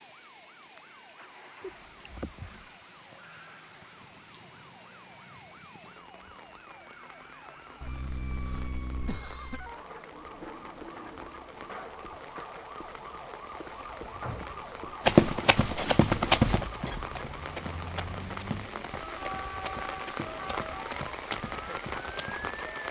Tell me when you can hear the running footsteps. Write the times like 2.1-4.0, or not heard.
15.1-22.6.